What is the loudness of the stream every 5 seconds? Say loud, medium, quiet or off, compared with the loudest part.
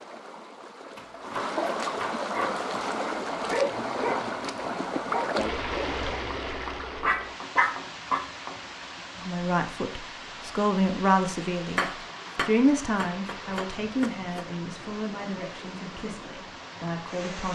loud, loud, medium, medium.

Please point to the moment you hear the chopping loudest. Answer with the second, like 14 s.
12 s.